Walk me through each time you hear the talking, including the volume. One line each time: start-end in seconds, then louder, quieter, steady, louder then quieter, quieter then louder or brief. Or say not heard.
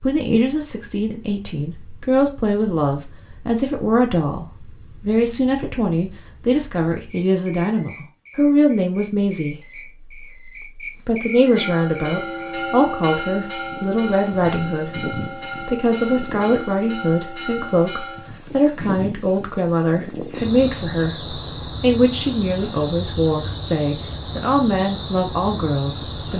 0.0-26.3 steady.